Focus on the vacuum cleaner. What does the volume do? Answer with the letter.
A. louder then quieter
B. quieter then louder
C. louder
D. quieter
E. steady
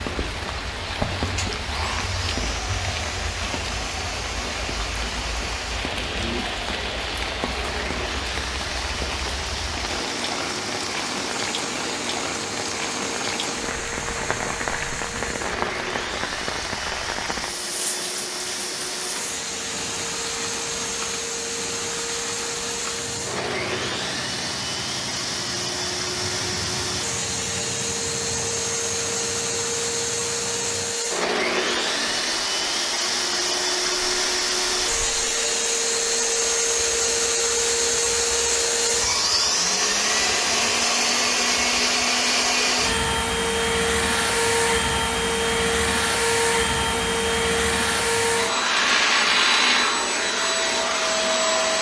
C.